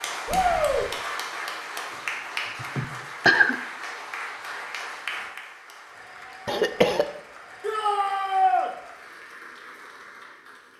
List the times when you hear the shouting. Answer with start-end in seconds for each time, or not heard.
0.2-0.8, 7.6-8.7.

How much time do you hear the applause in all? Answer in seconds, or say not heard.
11 s.